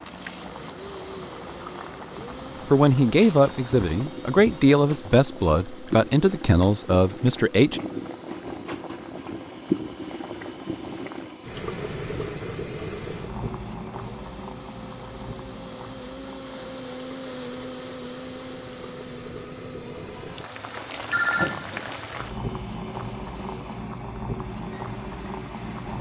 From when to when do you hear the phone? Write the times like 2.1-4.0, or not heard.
3.1-4.8, 21.1-21.9.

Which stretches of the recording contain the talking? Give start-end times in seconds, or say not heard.
2.7-7.8.